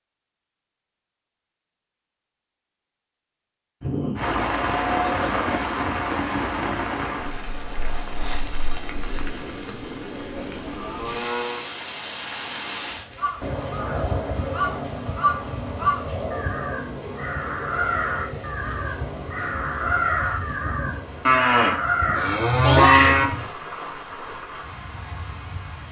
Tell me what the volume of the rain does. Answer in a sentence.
The loudness of the rain goes down.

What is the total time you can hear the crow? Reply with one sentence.
The crow can be heard for 10 seconds in total.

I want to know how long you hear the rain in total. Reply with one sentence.
You can hear the rain for 22 seconds altogether.